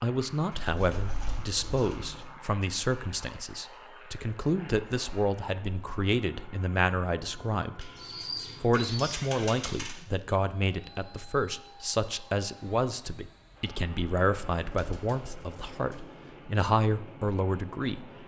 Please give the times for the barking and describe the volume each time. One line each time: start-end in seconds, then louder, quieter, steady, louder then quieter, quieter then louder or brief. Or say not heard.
not heard.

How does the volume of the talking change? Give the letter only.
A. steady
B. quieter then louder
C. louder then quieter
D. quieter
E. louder
A.